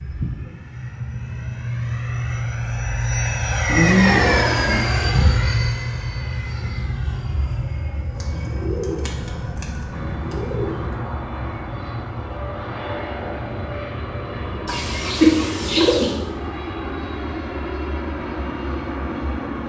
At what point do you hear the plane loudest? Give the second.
4 s.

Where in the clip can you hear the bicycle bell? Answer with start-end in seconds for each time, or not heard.
not heard.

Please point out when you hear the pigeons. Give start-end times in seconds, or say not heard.
3.6-4.8, 8.2-10.9, 14.7-16.2.